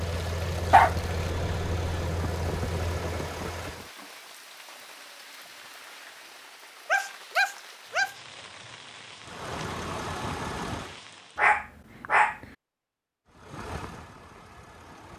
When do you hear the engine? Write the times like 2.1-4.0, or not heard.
0.0-3.9, 9.2-11.0, 13.2-15.1.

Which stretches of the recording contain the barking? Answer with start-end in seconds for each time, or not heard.
0.7-2.0, 6.8-8.2, 11.3-12.3.